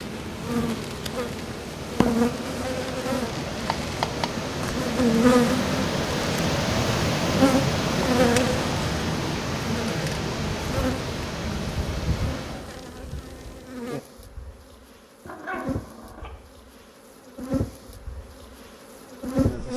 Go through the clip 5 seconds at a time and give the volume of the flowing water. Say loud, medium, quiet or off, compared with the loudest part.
medium, loud, medium, off.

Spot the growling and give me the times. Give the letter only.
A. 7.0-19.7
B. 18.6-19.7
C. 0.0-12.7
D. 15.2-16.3
D.